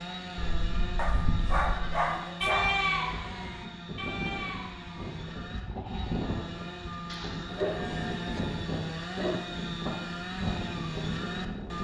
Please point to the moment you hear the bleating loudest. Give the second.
3 s.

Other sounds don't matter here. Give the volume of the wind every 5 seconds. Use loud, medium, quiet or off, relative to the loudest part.
medium, loud, loud.